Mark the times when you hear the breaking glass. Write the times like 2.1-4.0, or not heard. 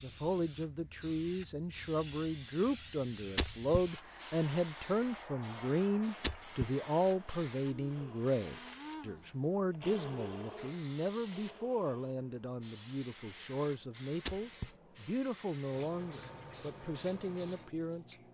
3.4-3.8, 6.2-6.7, 14.2-14.7.